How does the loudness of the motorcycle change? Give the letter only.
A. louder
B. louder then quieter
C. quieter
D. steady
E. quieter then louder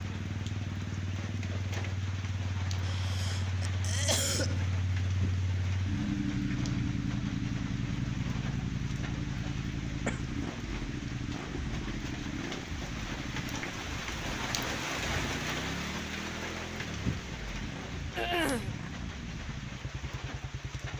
B.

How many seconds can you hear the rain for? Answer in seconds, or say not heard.
21 s.